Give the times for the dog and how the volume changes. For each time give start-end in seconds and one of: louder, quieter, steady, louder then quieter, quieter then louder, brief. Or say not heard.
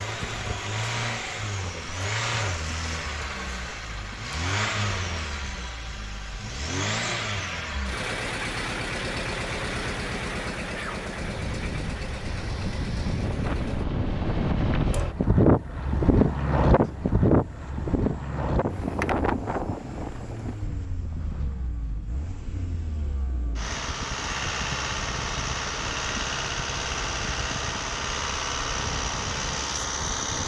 not heard.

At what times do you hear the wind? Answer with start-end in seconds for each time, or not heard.
11.2-30.4.